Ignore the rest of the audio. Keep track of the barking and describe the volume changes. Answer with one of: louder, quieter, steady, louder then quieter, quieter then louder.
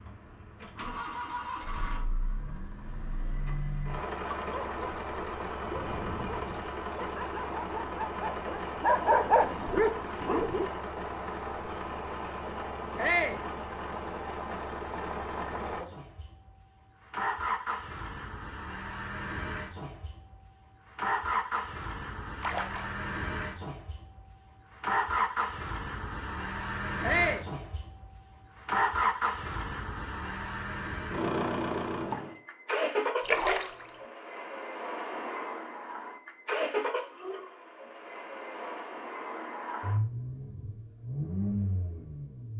louder.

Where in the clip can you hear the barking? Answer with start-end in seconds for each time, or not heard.
4.5-10.7.